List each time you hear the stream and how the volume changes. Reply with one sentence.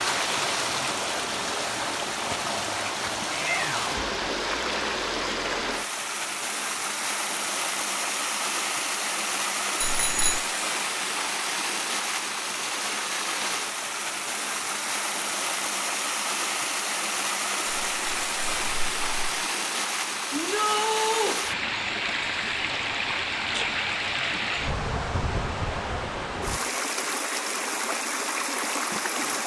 You can hear the stream from 0.0 to 29.4 s, at a steady volume.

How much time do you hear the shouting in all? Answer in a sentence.
You can hear the shouting for 2 seconds altogether.